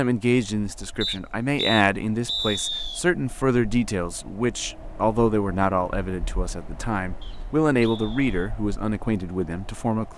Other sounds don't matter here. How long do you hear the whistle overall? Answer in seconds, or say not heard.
3 s.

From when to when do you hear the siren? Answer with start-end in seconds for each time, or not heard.
not heard.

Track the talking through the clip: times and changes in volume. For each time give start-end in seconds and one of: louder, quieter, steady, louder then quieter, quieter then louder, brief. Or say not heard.
0.0-10.1 steady.